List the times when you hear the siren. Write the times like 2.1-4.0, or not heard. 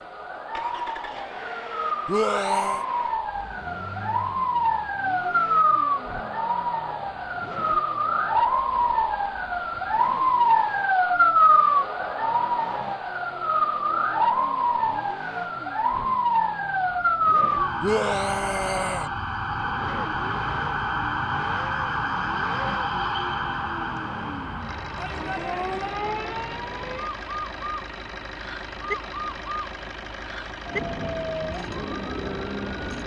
0.0-33.0.